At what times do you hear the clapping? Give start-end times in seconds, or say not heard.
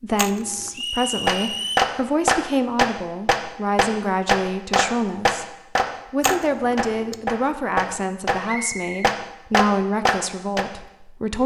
1.2-8.3, 9.0-10.7.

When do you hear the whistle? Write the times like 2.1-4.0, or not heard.
0.7-1.9, 8.4-9.2.